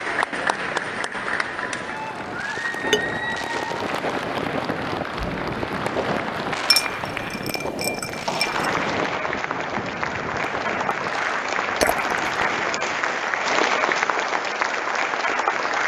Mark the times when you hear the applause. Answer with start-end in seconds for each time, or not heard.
0.0-15.8.